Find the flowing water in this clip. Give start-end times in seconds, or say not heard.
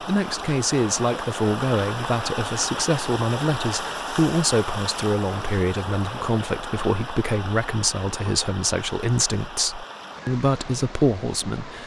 0.0-11.8.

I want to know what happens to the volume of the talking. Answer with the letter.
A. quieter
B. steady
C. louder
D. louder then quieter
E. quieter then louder
B.